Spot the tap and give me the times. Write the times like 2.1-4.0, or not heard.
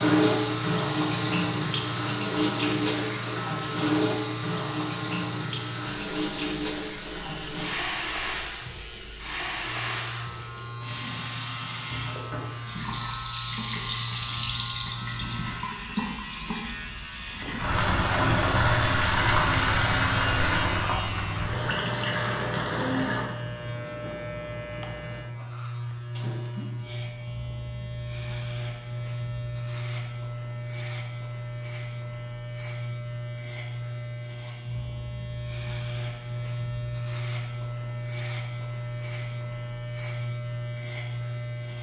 0.0-23.2.